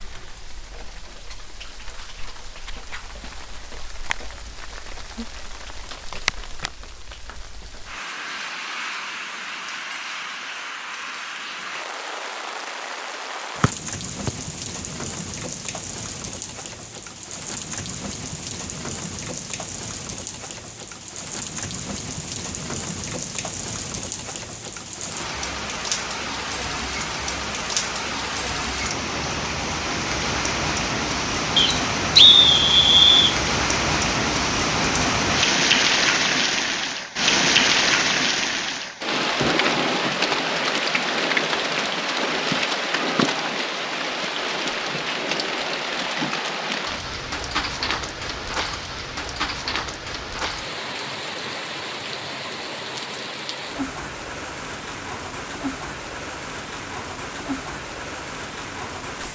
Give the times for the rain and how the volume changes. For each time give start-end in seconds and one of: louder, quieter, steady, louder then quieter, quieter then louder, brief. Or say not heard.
0.0-59.3 louder then quieter.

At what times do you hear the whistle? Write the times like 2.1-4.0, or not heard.
13.6-14.3, 31.6-33.4.